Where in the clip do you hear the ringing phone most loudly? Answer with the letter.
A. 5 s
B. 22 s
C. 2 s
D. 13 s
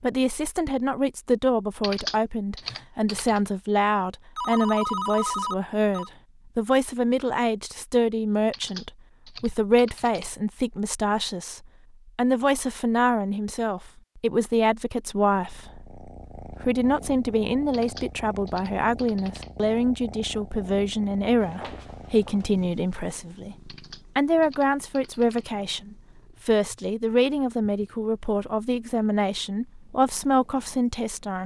A.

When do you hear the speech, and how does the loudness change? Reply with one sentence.
The speech can be heard from 0.0 to 31.4 s, at a steady volume.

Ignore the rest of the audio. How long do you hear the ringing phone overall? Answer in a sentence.
You can hear the ringing phone for 3 seconds altogether.